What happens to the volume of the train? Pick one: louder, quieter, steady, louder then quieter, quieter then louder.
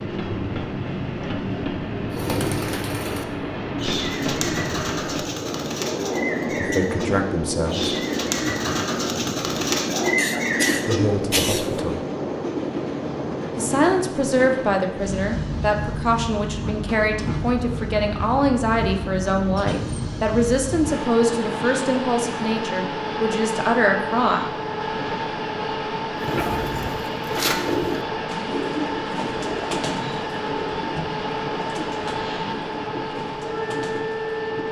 steady.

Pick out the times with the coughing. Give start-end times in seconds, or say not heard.
10.2-11.7.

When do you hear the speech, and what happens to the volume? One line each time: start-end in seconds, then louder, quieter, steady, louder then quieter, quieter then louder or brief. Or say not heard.
6.5-8.0 brief
10.8-11.9 brief
13.6-24.4 steady.